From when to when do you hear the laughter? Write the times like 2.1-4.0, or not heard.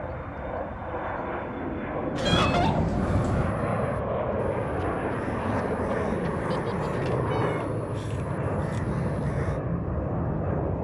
2.1-2.9, 6.5-7.3.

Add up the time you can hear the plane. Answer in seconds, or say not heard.
11 s.